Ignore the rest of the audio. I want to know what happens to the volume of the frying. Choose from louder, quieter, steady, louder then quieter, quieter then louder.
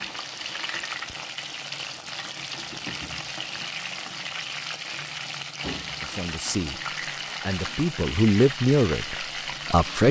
steady.